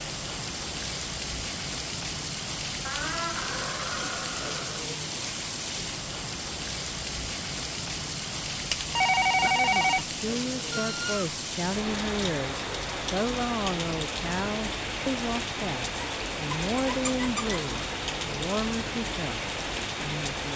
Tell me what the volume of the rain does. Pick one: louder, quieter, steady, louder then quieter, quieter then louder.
steady.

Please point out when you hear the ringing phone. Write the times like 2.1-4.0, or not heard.
8.7-10.1.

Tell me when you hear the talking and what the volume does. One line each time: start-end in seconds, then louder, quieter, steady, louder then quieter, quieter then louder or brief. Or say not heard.
9.5-20.5 steady.